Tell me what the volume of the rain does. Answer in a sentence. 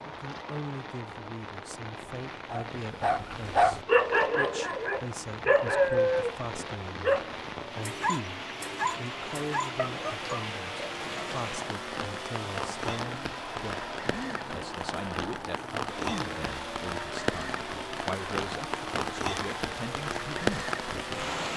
The loudness of the rain goes up.